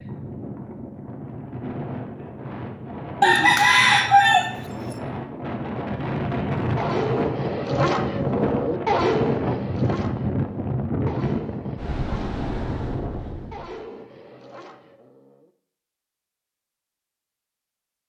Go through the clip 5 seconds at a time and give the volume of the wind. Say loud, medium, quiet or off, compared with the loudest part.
medium, loud, loud, off.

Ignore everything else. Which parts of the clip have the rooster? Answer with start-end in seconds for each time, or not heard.
3.2-5.0.